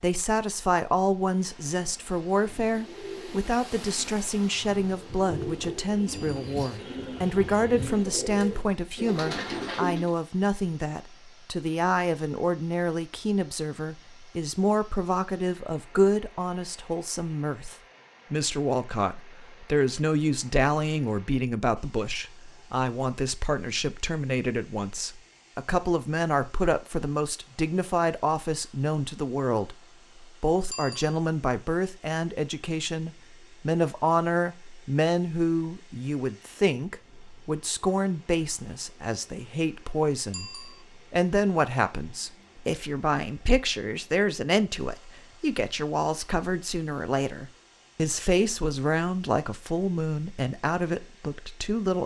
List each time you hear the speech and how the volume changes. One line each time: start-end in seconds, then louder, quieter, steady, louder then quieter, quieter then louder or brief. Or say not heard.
0.0-52.0 steady.